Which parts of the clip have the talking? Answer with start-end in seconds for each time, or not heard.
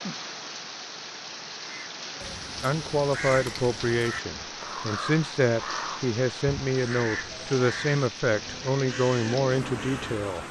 2.6-10.4.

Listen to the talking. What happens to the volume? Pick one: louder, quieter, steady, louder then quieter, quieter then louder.
steady.